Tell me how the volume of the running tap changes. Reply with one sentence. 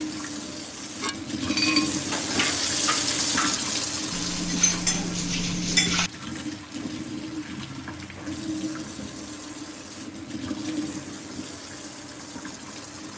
The volume of the running tap goes down.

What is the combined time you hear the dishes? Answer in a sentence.
You can hear the dishes for 5 seconds altogether.